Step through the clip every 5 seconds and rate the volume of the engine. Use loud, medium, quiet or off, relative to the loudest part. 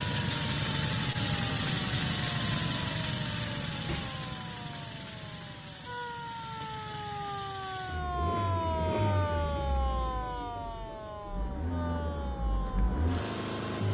loud, medium, medium.